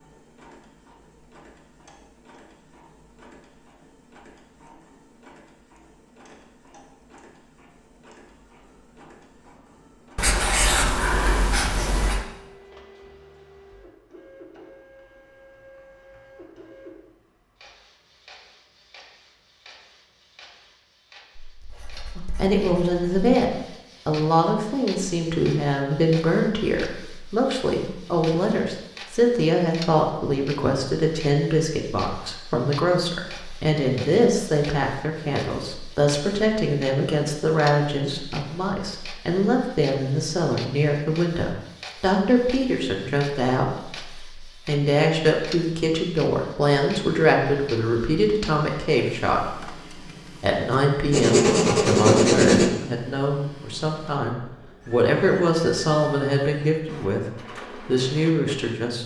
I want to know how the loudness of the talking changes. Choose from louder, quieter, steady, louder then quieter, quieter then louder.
steady.